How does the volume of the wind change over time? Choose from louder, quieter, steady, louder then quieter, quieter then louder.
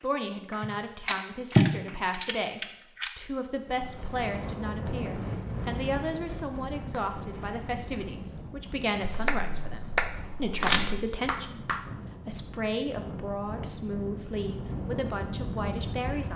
quieter then louder.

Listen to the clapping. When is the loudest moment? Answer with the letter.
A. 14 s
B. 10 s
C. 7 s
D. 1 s
B.